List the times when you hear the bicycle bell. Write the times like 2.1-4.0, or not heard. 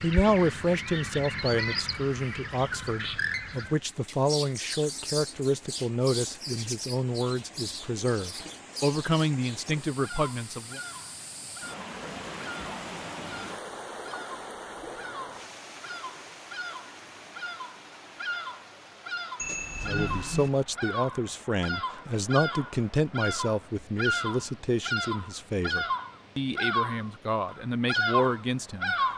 19.4-20.5.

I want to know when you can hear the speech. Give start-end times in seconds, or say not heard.
0.0-10.8, 19.8-28.9.